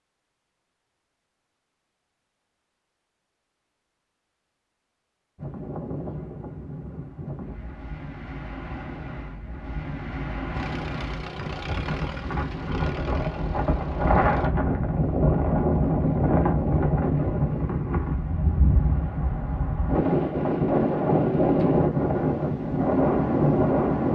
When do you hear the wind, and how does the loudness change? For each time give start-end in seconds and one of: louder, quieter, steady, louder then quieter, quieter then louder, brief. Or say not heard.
5.3-24.1 louder.